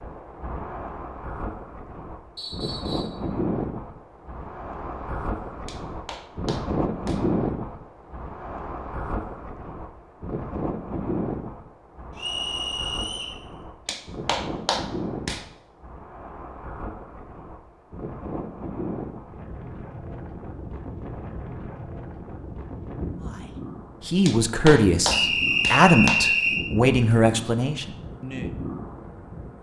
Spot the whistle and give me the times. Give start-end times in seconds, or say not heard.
2.4-3.1, 12.2-13.4, 25.1-26.6.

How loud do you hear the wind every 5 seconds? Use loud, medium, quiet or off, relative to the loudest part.
loud, loud, loud, medium, medium, medium.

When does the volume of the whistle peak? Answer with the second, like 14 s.
26 s.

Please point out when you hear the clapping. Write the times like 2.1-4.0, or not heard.
5.7-7.2, 13.8-15.4, 24.2-26.2.